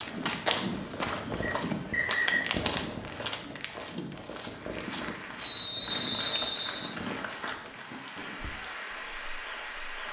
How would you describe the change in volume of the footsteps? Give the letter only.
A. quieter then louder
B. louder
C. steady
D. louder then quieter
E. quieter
E.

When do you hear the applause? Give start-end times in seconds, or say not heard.
4.5-10.0.